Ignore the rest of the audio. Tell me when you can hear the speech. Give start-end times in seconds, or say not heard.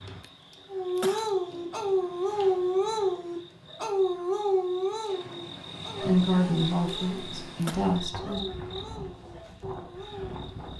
6.0-8.4.